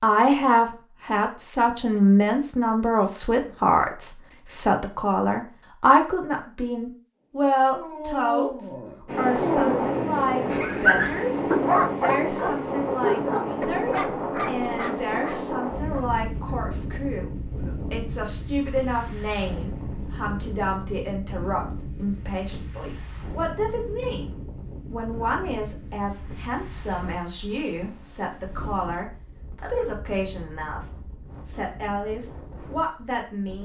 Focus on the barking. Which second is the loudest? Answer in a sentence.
The loudest moment of the barking is at 11 seconds.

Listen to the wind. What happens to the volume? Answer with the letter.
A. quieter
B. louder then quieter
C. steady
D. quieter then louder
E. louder
A.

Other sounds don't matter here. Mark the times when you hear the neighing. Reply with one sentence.
You can't hear the neighing here.